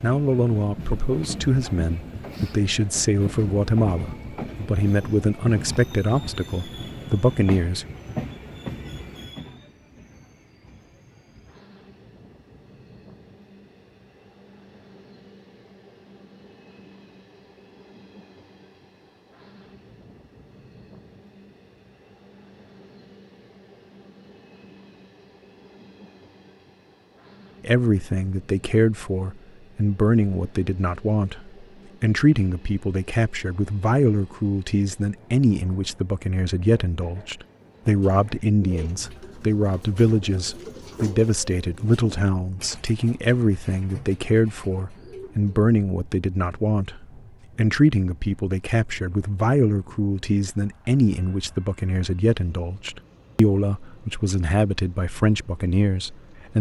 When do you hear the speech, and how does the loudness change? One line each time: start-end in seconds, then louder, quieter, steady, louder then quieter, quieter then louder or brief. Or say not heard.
0.0-7.8 steady
27.6-56.5 steady.